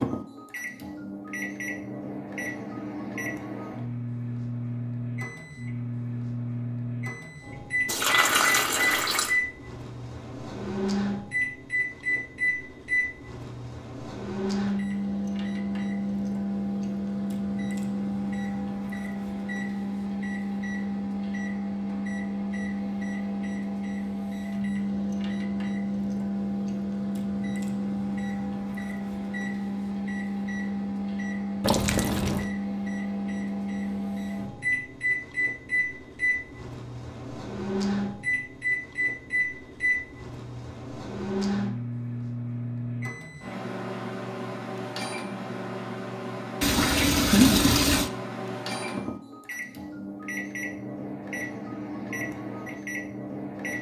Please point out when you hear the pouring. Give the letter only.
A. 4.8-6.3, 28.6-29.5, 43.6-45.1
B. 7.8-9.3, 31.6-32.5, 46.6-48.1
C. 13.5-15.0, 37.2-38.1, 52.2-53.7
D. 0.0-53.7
B.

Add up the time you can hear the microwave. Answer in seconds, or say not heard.
54 s.